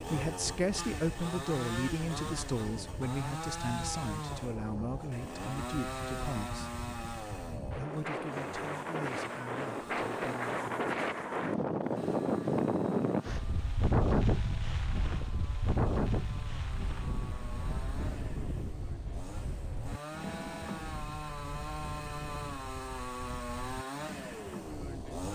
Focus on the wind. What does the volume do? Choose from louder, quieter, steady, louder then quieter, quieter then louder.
louder then quieter.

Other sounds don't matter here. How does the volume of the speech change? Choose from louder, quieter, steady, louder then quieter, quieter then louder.
quieter.